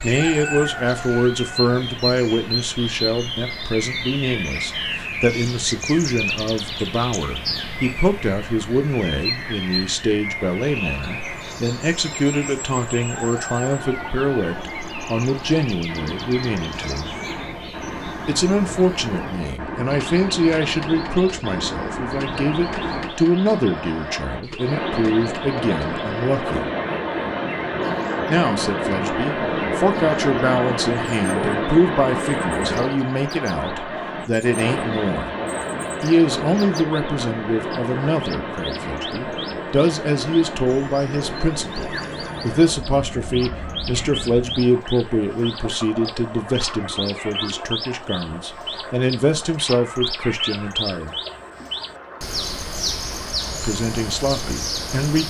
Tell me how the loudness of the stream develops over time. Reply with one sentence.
The volume of the stream goes up, then down.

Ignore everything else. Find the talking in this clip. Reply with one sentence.
You can hear the talking from 0.0 to 17.1 s, from 18.2 to 26.6 s, from 28.2 to 35.3 s, from 36.0 to 51.1 s and from 53.5 to 55.2 s.